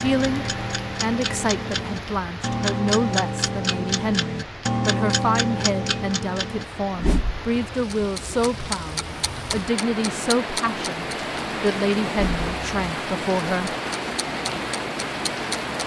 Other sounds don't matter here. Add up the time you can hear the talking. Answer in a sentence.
You can hear the talking for 14 seconds altogether.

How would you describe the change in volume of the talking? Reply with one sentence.
The loudness of the talking stays about the same.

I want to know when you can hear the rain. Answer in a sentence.
The rain can be heard from 0.0 to 15.8 s.